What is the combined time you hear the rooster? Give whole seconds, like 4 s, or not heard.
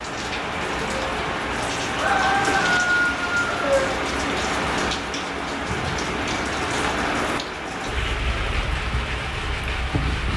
2 s.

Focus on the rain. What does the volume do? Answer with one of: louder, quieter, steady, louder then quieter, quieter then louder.
steady.